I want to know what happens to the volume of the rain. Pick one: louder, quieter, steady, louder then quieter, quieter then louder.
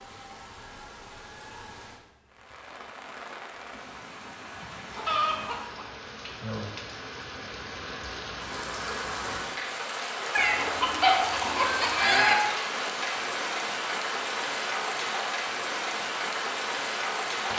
louder.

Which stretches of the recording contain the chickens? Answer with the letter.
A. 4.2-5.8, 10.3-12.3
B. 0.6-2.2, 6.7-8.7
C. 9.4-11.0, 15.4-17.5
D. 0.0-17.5
A.